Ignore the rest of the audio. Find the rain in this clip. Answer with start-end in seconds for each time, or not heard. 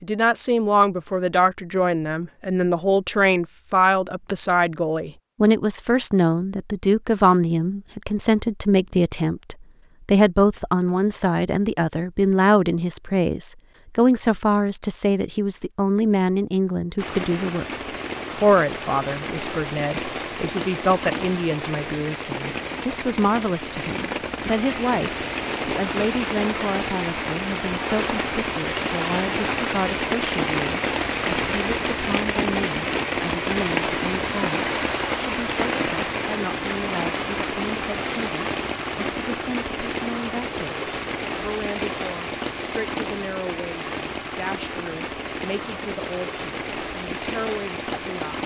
16.9-48.4.